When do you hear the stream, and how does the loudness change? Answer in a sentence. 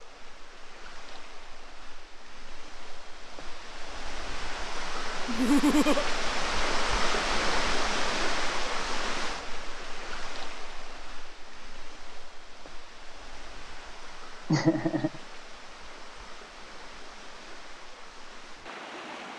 The stream can be heard from 0.0 to 19.3 s, getting louder then quieter.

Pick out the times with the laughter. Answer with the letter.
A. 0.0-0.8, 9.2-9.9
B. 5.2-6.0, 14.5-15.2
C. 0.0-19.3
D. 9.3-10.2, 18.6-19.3
B.